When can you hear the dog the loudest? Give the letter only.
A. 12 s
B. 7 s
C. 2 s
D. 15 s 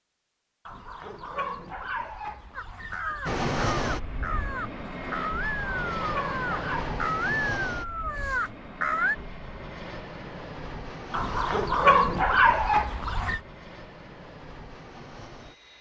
A.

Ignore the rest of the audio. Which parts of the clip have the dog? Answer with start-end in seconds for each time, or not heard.
0.7-3.4, 5.5-7.0, 11.1-13.4.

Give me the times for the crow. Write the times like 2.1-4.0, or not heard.
2.5-9.2.